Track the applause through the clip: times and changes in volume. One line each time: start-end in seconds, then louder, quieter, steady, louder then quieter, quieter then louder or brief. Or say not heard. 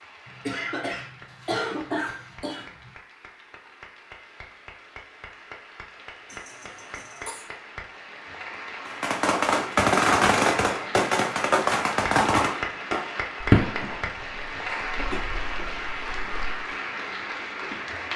0.0-18.1 louder.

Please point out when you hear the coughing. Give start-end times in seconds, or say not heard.
0.2-2.9, 6.2-7.5, 14.7-15.7.